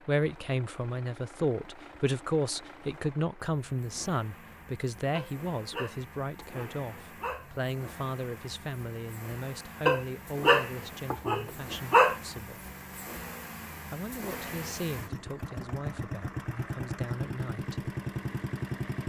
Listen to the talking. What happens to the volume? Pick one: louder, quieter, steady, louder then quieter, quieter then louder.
quieter.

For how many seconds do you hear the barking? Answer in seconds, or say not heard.
5 s.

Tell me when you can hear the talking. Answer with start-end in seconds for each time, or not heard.
0.1-12.6, 13.9-17.9.